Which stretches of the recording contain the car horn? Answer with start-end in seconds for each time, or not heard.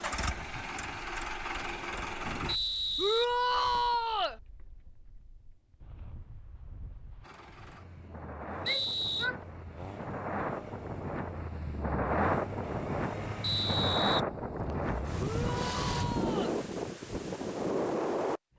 not heard.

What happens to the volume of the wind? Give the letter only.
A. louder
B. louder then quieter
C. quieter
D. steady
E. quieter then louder
A.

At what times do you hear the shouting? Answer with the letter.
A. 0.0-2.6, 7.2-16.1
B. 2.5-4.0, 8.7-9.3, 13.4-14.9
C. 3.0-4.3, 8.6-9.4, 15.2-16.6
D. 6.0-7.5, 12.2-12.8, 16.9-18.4
C.